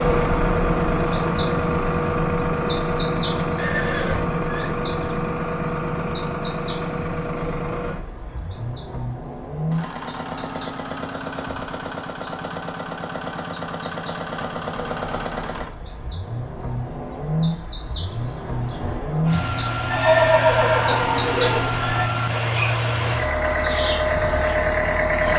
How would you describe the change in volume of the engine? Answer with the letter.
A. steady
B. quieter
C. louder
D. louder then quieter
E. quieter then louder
E.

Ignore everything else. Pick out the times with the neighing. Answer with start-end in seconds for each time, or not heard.
3.5-4.7, 19.9-22.1.